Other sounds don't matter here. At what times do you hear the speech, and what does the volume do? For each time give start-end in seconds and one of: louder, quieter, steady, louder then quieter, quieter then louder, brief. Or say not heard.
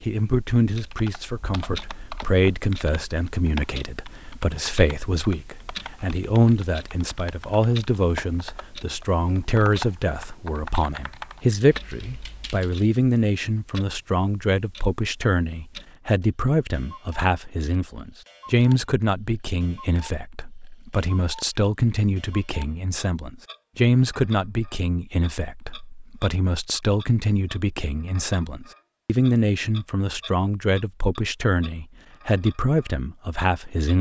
0.0-33.9 steady.